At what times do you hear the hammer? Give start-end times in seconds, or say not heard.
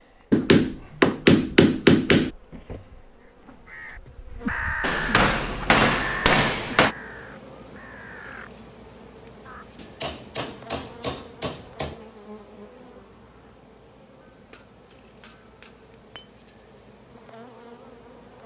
0.3-2.3, 4.8-7.0, 9.8-12.0, 14.5-16.2.